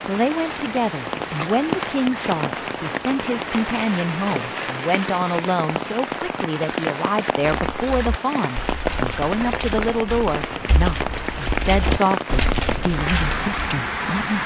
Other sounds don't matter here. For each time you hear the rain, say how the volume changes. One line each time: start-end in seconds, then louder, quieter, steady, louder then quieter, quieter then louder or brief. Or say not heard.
0.0-14.4 steady.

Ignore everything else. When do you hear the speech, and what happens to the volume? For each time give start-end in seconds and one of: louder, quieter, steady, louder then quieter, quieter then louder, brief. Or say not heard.
0.0-14.4 steady.